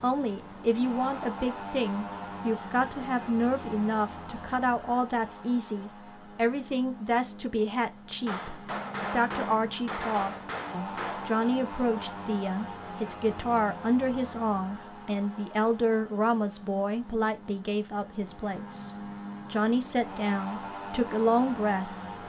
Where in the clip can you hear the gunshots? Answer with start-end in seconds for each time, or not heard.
8.2-11.3.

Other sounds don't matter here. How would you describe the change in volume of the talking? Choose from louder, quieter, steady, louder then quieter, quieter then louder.
steady.